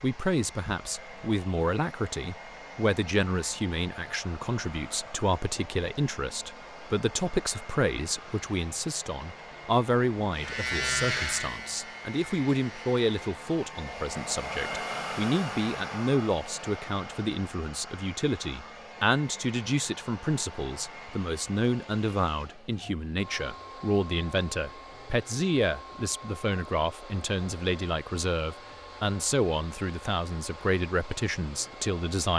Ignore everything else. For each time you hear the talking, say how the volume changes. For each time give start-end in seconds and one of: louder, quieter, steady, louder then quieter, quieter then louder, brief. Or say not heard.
0.0-32.3 steady.